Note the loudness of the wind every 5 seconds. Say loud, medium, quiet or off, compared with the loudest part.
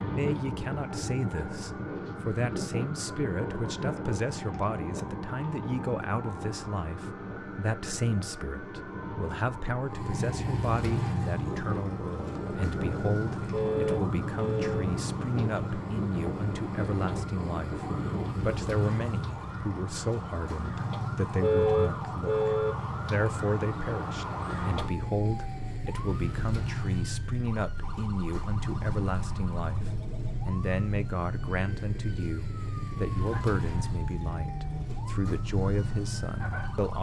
loud, medium, loud, loud, off, off, off, off.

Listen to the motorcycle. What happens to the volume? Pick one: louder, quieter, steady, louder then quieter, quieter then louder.
steady.